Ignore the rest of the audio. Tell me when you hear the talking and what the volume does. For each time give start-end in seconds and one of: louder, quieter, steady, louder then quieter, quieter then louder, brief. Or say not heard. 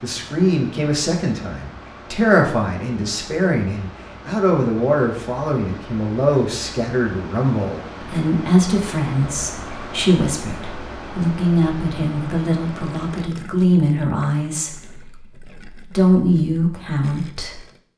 0.0-17.6 steady.